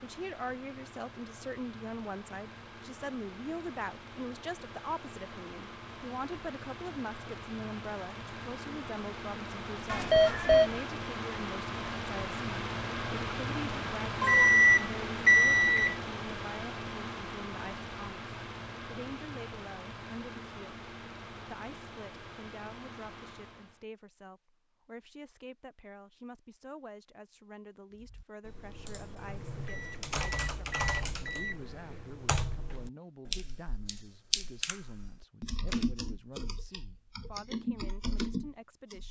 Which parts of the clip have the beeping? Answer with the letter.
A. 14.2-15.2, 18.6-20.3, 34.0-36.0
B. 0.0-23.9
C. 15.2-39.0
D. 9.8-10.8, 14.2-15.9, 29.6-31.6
D.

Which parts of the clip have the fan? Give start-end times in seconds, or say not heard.
0.0-23.9.